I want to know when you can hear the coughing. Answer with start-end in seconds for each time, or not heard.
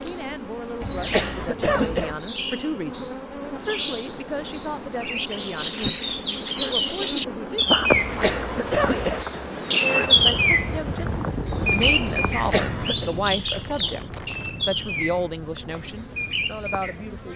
0.8-2.1, 7.9-9.2, 12.2-13.1.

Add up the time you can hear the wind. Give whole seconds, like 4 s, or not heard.
14 s.